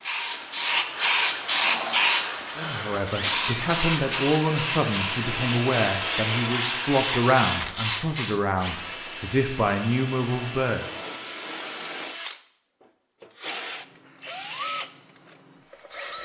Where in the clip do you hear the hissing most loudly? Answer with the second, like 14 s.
2 s.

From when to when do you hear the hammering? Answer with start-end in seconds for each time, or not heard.
not heard.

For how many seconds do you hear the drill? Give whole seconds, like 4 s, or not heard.
15 s.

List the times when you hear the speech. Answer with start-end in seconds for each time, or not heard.
2.5-11.1.